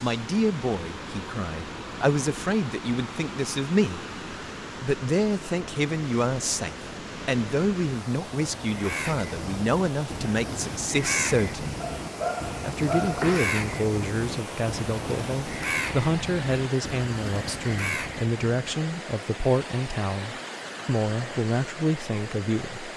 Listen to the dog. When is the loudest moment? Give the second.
13 s.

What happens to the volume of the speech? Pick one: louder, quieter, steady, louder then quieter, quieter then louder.
steady.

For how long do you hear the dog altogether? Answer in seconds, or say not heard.
2 s.